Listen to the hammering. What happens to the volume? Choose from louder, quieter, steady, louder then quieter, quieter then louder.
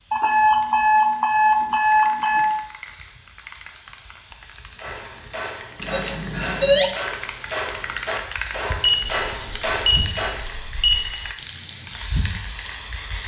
louder.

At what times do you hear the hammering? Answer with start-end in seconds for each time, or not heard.
4.8-10.4.